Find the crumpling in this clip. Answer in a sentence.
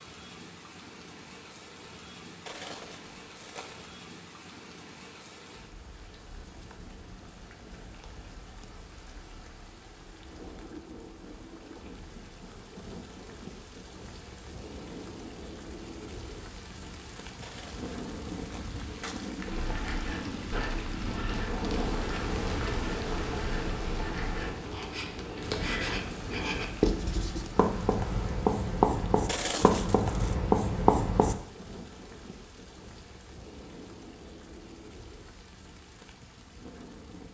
The crumpling can be heard from 2.5 to 4.0 s, from 17.4 to 19.4 s and from 29.2 to 30.4 s.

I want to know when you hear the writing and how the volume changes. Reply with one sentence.
You can hear the writing from 19.4 to 31.4 s, getting louder.